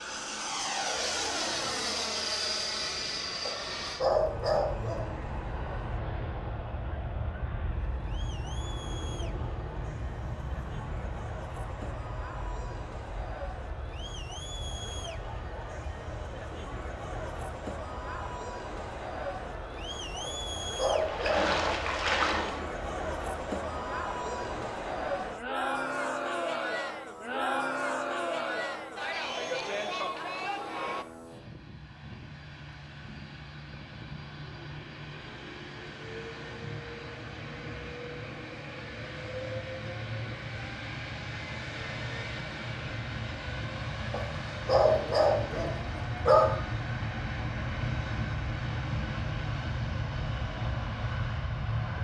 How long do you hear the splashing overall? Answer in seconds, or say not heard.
2 s.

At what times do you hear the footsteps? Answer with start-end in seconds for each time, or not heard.
not heard.